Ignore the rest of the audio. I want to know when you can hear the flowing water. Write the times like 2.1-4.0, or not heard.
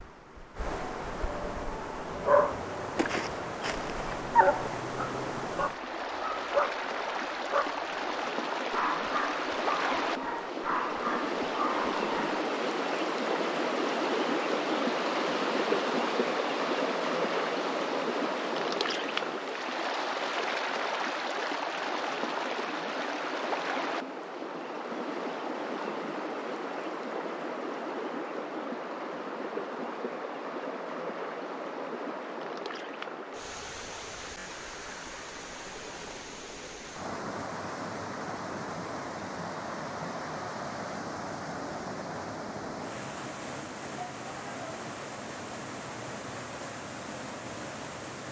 0.0-48.2.